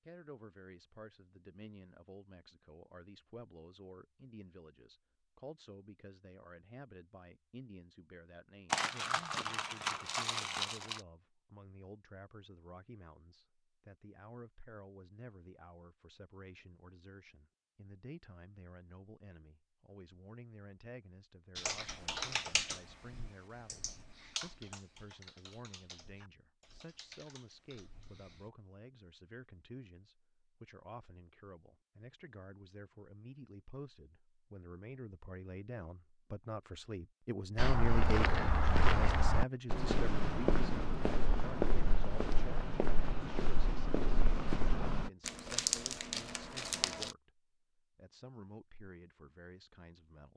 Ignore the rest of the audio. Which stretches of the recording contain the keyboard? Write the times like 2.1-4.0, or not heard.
21.6-28.5.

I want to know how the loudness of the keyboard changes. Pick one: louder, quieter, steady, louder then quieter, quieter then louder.
quieter.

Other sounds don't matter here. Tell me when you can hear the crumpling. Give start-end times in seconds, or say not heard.
8.7-11.0, 45.2-47.1.